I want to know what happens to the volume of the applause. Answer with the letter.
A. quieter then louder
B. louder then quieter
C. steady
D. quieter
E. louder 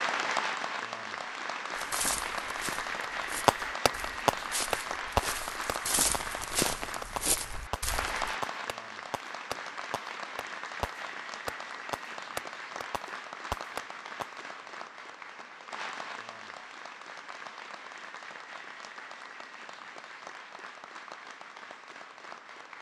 D.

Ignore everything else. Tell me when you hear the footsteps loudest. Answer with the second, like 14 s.
7 s.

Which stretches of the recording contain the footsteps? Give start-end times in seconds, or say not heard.
1.8-8.3.